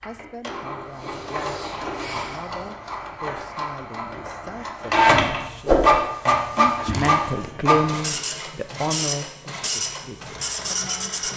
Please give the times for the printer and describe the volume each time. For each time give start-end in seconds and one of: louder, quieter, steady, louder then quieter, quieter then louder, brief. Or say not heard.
0.0-11.3 louder then quieter.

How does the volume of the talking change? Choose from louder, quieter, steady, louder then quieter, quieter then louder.
louder then quieter.